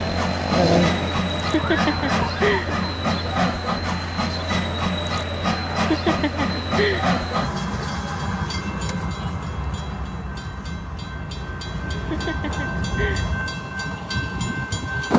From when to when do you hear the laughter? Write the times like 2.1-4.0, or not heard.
1.4-2.8, 5.8-7.1, 11.9-13.3.